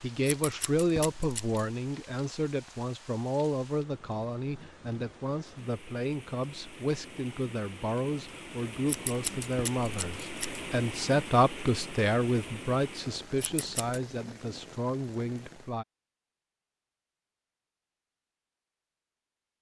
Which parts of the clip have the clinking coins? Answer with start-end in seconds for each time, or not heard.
not heard.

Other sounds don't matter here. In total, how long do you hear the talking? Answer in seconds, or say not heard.
16 s.